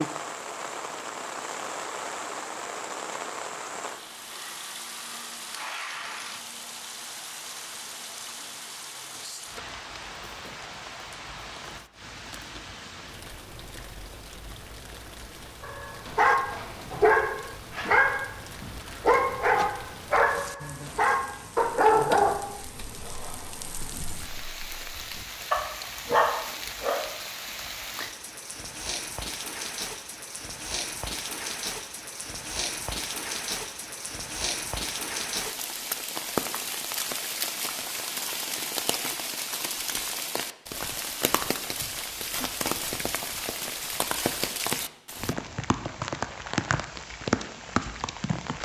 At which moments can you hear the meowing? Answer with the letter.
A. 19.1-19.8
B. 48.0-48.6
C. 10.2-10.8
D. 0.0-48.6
A.